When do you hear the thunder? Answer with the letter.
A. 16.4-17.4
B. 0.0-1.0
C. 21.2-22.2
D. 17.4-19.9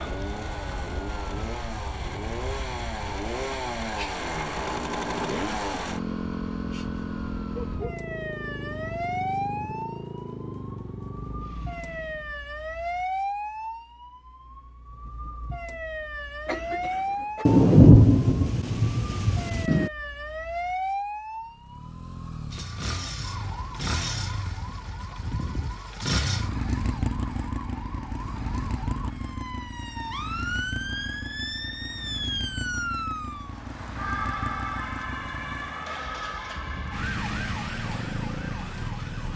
D.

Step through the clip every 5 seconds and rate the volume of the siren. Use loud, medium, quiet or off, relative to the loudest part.
medium, loud, loud, loud, loud, medium, loud, loud.